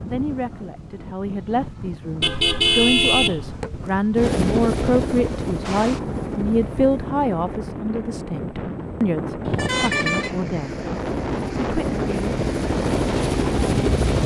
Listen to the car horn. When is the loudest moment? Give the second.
3 s.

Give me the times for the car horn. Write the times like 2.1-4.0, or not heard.
2.2-3.6, 9.4-10.3.